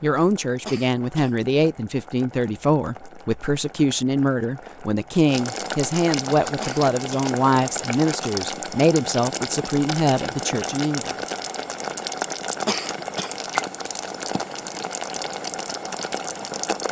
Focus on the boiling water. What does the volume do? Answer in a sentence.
The loudness of the boiling water goes up.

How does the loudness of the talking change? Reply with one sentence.
The loudness of the talking stays about the same.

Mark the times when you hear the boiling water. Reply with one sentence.
The boiling water can be heard from 0.0 to 16.8 s.